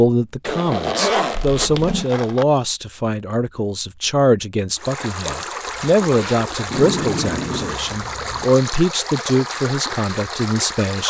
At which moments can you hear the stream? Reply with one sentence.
The stream can be heard from 4.8 to 11.0 s.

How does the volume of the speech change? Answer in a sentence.
The volume of the speech stays about the same.